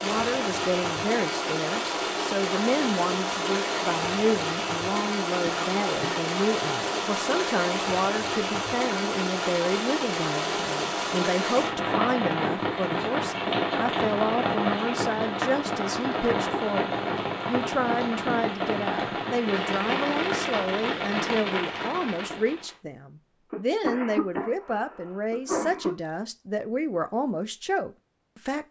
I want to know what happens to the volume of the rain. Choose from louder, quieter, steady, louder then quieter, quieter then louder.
steady.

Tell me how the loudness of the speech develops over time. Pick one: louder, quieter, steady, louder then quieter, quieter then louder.
steady.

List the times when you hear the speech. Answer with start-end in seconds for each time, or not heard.
0.0-28.6.